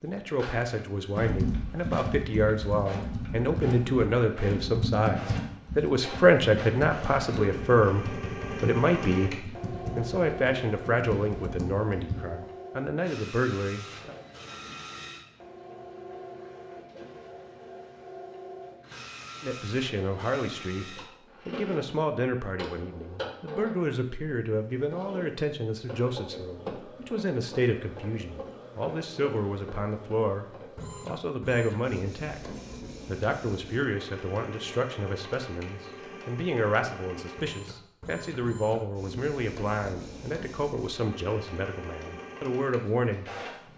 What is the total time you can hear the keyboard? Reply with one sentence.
You can hear the keyboard for 11 seconds altogether.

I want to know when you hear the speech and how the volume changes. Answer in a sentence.
The speech can be heard from 0.0 to 14.2 s, getting louder then quieter; and from 19.4 to 43.7 s, at a steady volume.